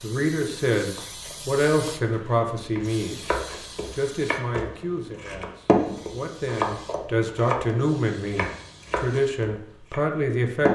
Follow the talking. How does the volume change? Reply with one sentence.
The loudness of the talking goes down, then up.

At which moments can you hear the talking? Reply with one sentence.
You can hear the talking from 0.0 to 3.1 s and from 3.9 to 10.7 s.